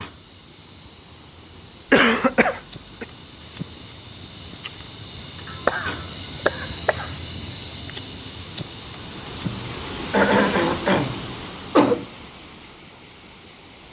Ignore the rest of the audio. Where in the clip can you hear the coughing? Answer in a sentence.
You can hear the coughing from 1.9 to 3.0 s, from 5.5 to 7.1 s and from 9.4 to 12.1 s.